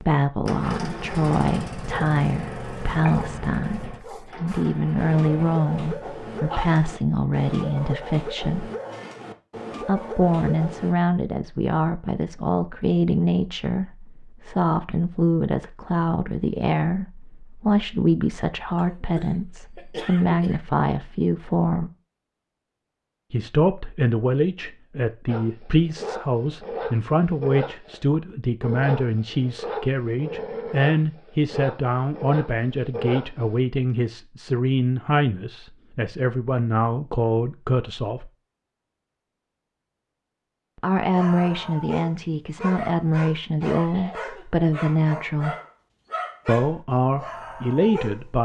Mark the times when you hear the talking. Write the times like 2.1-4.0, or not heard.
0.0-8.7, 9.8-21.9, 23.3-38.3, 40.8-45.5, 46.5-48.3.